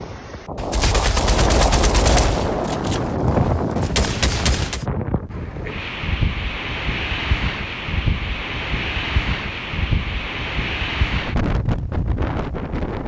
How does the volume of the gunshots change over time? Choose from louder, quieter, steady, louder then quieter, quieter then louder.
quieter then louder.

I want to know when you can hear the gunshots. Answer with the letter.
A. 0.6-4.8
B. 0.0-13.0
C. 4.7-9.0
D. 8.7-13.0
A.